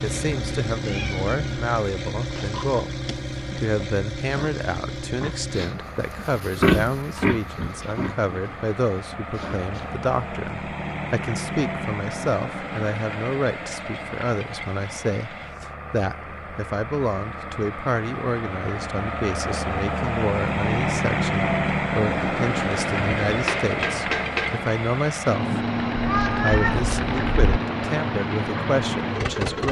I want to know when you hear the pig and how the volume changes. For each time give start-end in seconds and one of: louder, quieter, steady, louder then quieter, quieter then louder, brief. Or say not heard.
2.1-9.9 louder then quieter.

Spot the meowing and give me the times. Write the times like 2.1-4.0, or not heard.
0.1-1.7, 25.9-27.6.